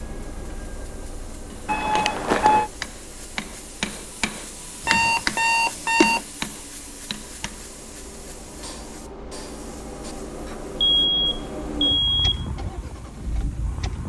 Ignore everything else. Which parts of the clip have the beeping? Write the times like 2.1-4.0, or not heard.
1.6-2.6, 4.8-6.2, 10.8-12.4.